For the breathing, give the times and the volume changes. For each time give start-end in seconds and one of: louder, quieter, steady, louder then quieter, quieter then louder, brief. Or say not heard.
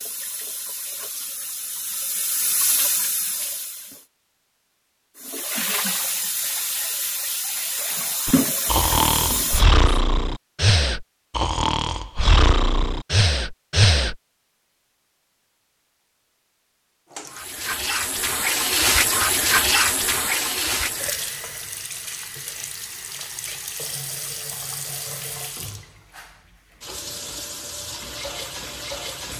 8.2-14.2 steady.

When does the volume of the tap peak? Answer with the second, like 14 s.
19 s.